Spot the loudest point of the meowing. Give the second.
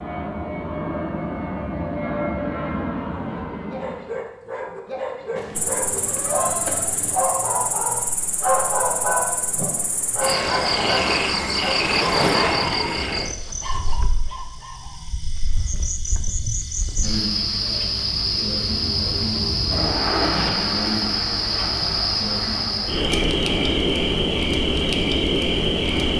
7 s.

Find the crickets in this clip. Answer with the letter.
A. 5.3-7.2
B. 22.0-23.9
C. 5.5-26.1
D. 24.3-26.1
C.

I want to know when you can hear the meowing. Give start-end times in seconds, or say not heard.
5.3-7.2.